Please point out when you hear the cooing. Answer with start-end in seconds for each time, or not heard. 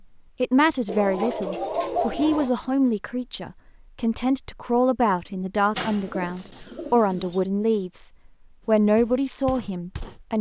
0.8-2.5, 5.8-7.4.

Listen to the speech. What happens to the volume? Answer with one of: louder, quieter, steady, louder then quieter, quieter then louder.
steady.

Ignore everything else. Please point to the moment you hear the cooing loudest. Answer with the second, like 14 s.
2 s.